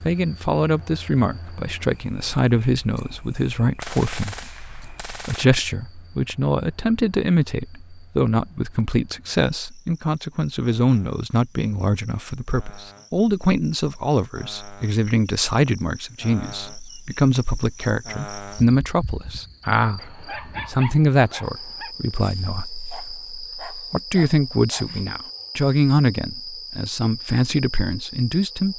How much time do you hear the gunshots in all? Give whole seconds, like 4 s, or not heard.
2 s.